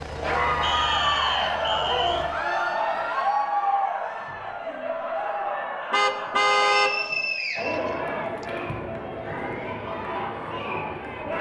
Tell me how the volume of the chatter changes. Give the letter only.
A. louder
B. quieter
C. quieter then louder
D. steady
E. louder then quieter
B.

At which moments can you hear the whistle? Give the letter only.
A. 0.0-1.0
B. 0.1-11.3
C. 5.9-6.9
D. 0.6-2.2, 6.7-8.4
D.